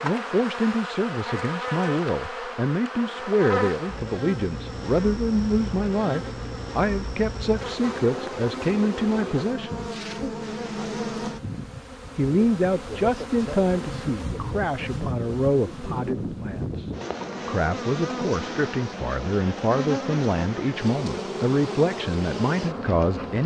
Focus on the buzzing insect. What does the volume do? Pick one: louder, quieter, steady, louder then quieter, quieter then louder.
steady.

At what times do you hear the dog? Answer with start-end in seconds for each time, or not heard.
not heard.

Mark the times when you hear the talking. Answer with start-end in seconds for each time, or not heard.
0.0-9.9, 12.2-23.4.